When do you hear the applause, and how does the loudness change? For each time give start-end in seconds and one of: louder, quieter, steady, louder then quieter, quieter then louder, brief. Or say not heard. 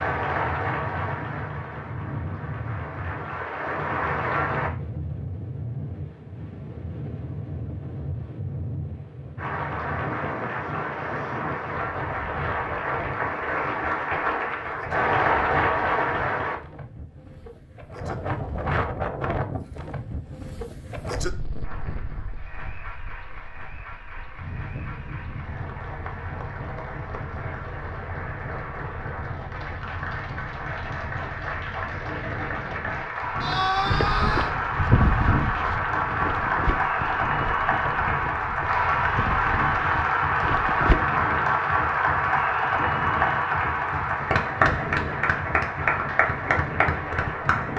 0.0-4.7 quieter then louder
9.3-16.6 louder
21.6-47.7 louder.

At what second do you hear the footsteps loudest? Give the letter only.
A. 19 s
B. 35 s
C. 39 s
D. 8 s
B.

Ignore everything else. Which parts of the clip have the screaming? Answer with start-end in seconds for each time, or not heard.
33.4-34.5.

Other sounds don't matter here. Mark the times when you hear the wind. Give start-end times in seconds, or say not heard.
0.0-47.7.